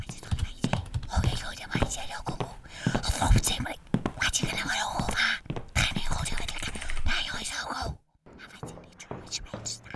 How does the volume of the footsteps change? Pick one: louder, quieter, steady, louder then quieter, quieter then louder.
quieter.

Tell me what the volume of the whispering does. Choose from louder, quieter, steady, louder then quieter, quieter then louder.
louder then quieter.